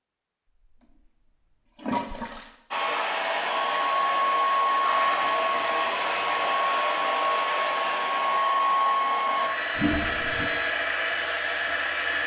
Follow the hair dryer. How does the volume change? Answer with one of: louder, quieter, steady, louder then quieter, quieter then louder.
steady.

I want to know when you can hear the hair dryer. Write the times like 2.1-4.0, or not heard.
2.7-12.2.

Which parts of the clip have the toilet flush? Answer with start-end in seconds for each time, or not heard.
1.8-2.5, 4.8-6.6, 9.8-10.5.